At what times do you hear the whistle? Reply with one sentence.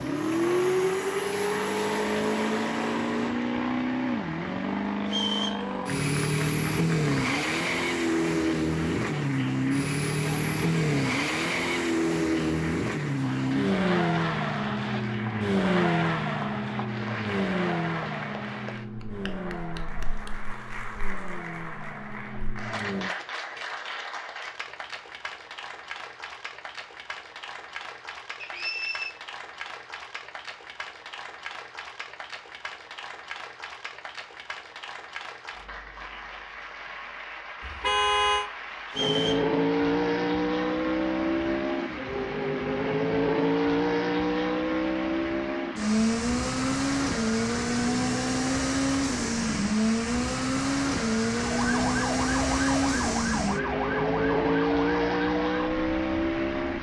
You can hear the whistle from 5.0 to 5.7 s, from 28.4 to 29.1 s and from 38.9 to 39.5 s.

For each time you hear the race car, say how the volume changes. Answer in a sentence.
The race car can be heard from 0.0 to 23.1 s, getting quieter; and from 39.0 to 56.7 s, at a steady volume.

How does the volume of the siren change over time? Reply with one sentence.
The volume of the siren goes down.